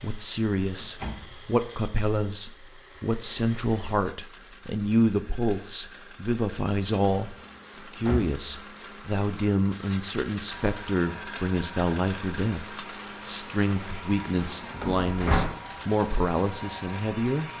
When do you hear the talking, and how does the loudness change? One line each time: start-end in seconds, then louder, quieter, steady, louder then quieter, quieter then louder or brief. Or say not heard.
0.0-17.5 steady.